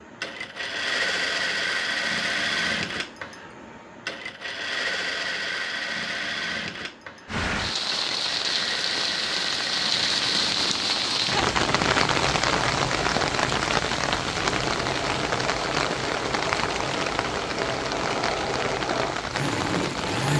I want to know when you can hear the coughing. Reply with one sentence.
You can't hear the coughing here.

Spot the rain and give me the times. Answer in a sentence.
You can hear the rain from 7.2 to 20.3 s.